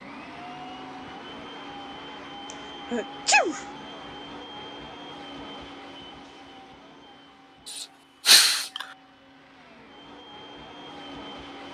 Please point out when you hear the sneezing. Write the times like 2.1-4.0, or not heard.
2.5-3.6, 7.8-8.8.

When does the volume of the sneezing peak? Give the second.
8 s.